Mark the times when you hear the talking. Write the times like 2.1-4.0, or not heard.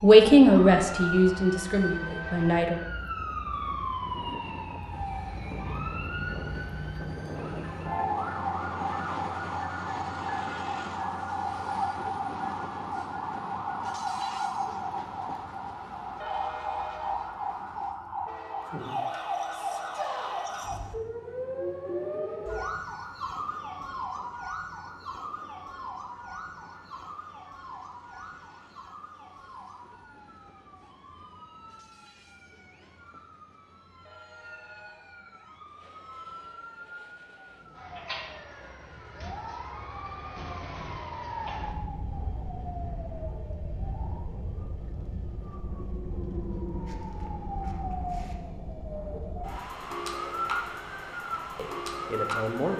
0.0-2.8, 51.5-52.7.